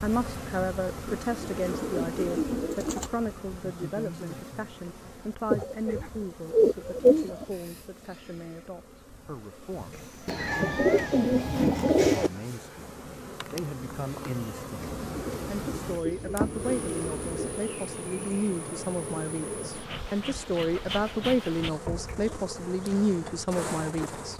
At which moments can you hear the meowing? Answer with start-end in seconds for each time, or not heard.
9.9-11.2.